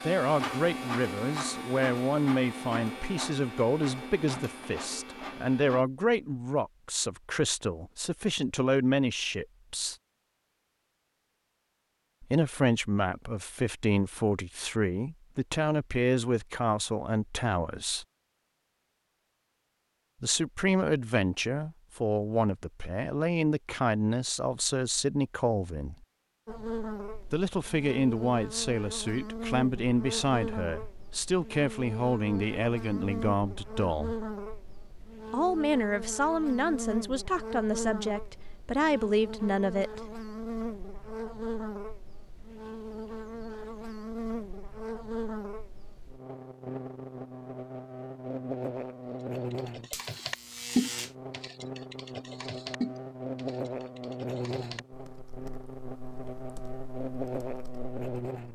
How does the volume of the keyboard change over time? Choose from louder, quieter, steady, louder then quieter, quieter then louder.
quieter.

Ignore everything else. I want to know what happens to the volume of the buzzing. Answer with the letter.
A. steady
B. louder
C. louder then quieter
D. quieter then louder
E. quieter
A.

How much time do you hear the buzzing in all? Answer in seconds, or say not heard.
32 s.